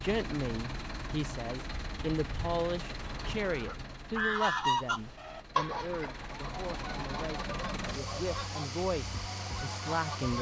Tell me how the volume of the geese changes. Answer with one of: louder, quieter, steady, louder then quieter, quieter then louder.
quieter.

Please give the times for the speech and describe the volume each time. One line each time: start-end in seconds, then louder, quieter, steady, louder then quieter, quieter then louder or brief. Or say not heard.
0.0-10.3 quieter then louder.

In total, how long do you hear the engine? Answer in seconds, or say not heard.
10 s.